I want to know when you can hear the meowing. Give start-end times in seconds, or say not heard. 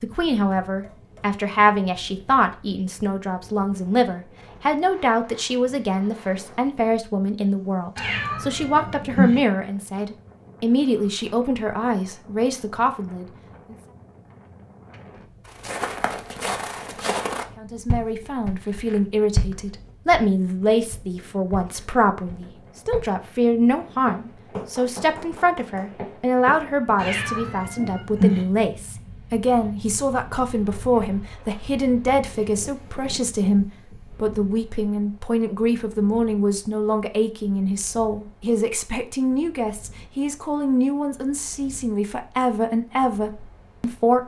8.0-9.4, 26.9-28.4.